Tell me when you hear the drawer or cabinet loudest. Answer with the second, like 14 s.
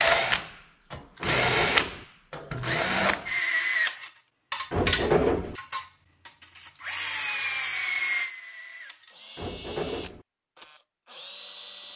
5 s.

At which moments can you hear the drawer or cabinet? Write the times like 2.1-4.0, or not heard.
1.2-2.0, 4.7-5.5, 9.3-10.2.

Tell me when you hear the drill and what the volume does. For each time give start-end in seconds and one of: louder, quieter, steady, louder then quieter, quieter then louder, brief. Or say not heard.
0.0-11.9 quieter.